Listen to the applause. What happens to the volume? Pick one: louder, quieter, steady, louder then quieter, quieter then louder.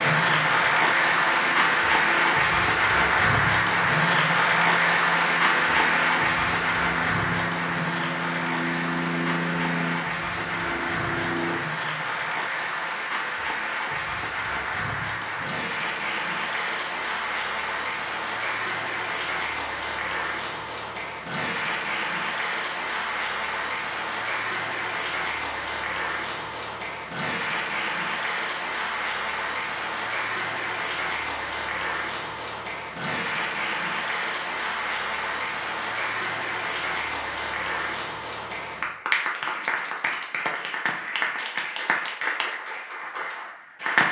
quieter.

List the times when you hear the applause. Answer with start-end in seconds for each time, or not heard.
0.0-44.0.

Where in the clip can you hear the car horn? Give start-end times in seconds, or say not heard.
not heard.